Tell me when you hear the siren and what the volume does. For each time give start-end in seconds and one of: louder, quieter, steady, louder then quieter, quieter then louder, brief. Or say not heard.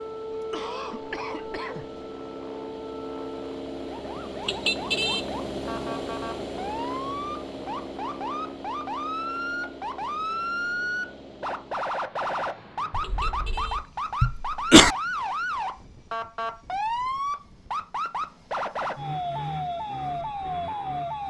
0.0-21.2 louder.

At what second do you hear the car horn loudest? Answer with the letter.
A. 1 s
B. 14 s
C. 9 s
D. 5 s
D.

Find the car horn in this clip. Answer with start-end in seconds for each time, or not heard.
4.4-5.2, 12.9-13.9.